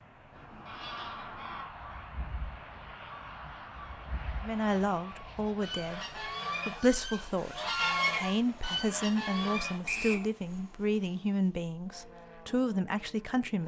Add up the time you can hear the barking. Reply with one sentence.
You can't hear the barking here.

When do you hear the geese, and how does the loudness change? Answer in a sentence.
You can hear the geese from 0.3 to 9.8 s, getting quieter then louder.